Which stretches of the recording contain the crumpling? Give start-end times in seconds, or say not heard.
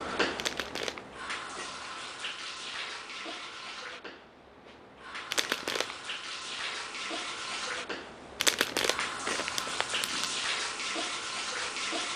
0.3-1.0, 5.3-6.0, 8.4-10.3.